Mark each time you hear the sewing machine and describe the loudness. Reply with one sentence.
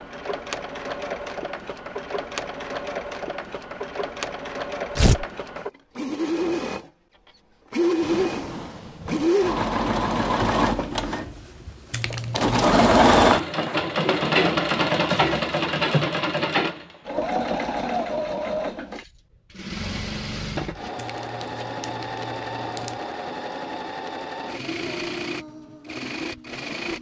The sewing machine can be heard from 0.0 to 26.9 s, getting louder then quieter.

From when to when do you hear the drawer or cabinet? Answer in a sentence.
The drawer or cabinet can be heard from 8.0 to 9.3 s and from 14.9 to 16.1 s.